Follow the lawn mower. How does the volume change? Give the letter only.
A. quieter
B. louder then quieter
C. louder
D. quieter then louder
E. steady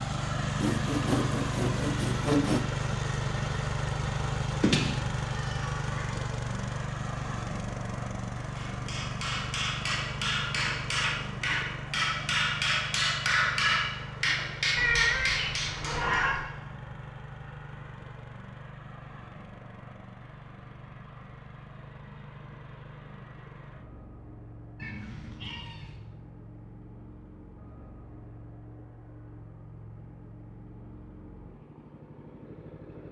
A.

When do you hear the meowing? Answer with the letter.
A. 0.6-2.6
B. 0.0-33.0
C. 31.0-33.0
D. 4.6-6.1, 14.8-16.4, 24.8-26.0
D.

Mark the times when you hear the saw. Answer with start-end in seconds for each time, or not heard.
0.6-2.6.